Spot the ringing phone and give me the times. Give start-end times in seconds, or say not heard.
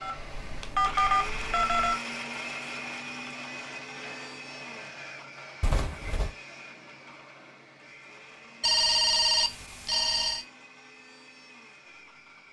0.0-1.9, 5.6-6.3, 8.6-10.4.